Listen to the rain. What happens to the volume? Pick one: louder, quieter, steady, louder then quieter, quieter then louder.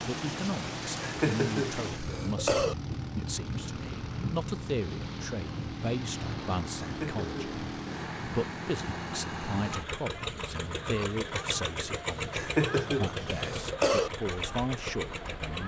quieter.